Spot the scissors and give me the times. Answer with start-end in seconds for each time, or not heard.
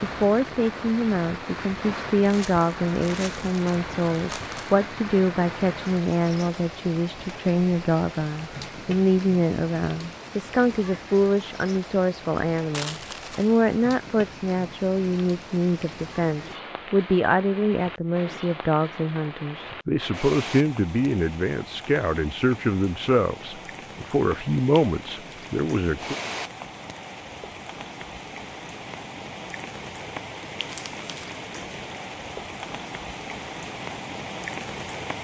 not heard.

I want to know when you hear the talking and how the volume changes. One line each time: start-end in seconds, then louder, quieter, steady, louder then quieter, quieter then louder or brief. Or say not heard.
0.0-26.1 steady.